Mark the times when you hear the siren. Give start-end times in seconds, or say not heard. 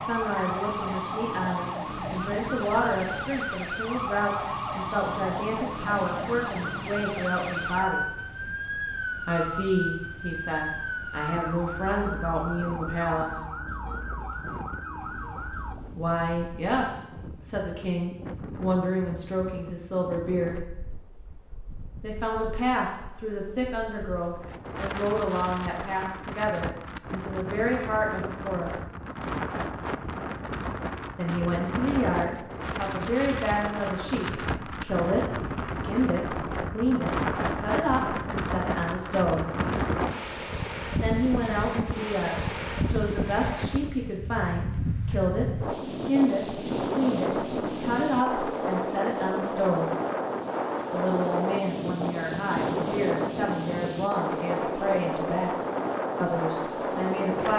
0.0-15.8.